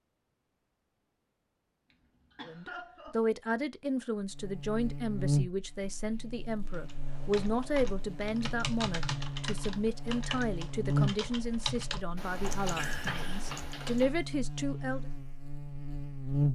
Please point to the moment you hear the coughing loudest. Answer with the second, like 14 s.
13 s.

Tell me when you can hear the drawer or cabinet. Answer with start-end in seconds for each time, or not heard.
not heard.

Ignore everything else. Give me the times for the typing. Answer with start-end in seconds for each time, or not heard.
6.7-14.1.